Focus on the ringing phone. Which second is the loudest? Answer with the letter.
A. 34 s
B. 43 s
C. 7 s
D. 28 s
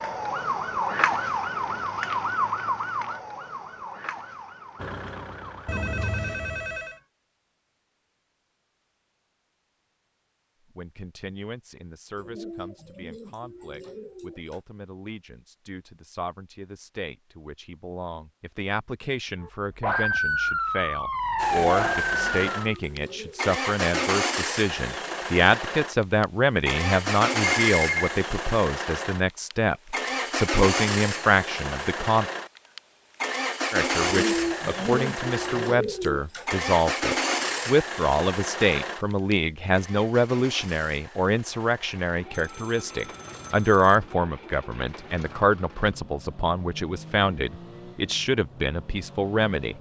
D.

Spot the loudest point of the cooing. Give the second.
34 s.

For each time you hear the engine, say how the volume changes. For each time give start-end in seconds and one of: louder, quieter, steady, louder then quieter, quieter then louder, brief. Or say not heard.
4.8-6.4 brief
21.4-49.7 quieter.